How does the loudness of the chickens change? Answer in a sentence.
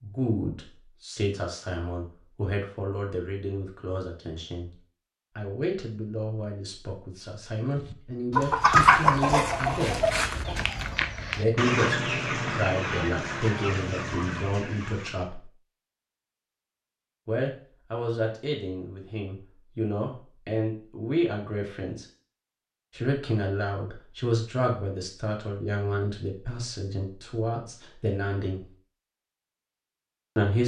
The loudness of the chickens goes down.